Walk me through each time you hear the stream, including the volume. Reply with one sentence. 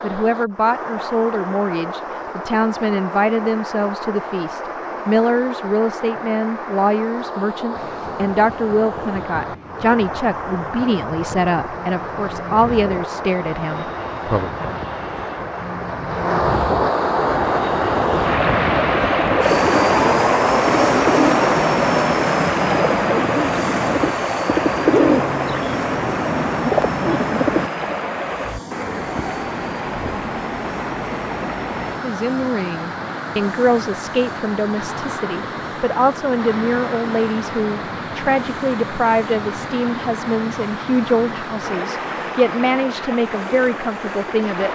You can hear the stream from 0.0 to 44.7 s, getting louder then quieter.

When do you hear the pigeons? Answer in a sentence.
The pigeons can be heard from 17.2 to 27.7 s.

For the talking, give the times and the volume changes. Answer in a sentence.
You can hear the talking from 0.0 to 14.5 s, at a steady volume; and from 32.0 to 44.7 s, at a steady volume.